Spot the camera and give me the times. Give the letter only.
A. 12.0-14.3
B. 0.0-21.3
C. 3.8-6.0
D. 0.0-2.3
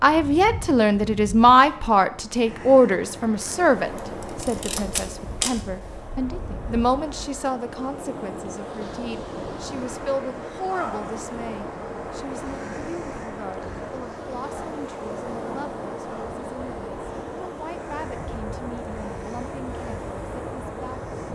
C.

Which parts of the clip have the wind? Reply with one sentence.
The wind can be heard from 0.0 to 21.3 s.